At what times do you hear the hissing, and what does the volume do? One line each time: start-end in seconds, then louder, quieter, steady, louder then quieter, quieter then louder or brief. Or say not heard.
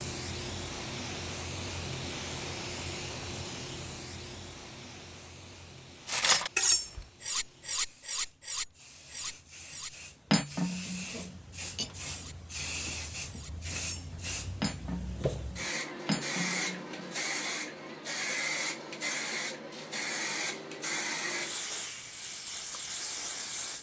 0.0-23.7 quieter then louder.